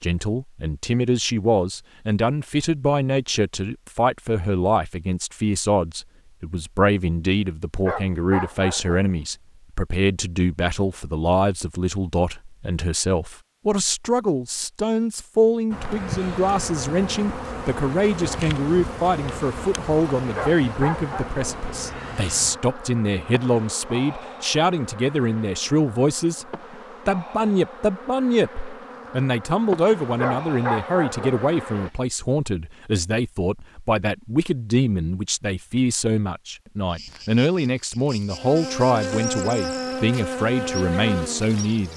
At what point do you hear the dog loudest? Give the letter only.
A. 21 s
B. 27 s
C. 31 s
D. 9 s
C.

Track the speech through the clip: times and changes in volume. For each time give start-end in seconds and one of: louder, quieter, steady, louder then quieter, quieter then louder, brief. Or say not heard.
0.0-26.4 steady
27.1-41.9 steady.